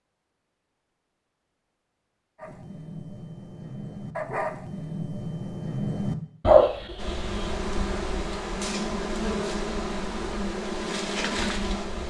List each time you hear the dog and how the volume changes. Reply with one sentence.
You can hear the dog from 2.4 to 7.6 s, getting louder.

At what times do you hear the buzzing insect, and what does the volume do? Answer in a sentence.
You can hear the buzzing insect from 7.0 to 12.0 s, at a steady volume.